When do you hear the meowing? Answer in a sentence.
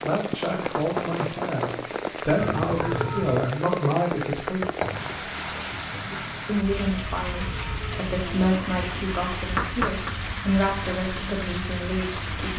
You can hear the meowing from 2.4 to 3.5 s and from 6.9 to 8.9 s.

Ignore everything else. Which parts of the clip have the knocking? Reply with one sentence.
You can hear the knocking from 0.6 to 1.9 s, from 4.6 to 5.2 s and from 9.6 to 10.2 s.